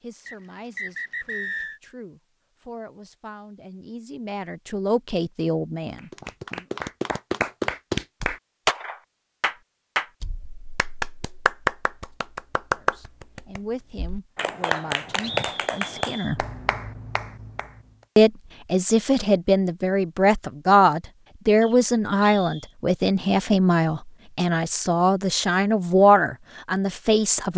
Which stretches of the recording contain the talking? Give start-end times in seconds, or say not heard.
0.0-6.7, 12.8-16.4, 18.1-27.5.